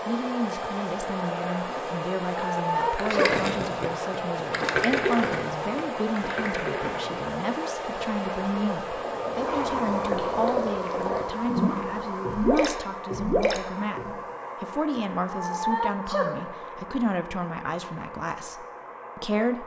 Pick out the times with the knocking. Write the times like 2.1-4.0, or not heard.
not heard.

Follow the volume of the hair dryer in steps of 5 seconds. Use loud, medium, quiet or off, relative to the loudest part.
loud, loud, loud, medium.